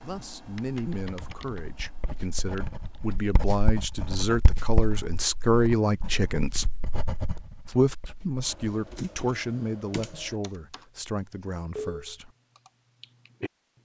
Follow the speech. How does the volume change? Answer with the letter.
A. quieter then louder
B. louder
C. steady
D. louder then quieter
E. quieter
D.